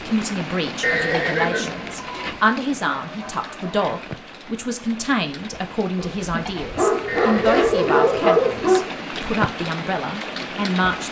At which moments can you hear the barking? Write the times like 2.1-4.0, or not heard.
3.0-4.0, 6.0-8.9.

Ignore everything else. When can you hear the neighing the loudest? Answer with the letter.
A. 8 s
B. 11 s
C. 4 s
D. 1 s
D.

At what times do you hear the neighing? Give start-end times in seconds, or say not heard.
0.8-2.4, 7.0-7.7.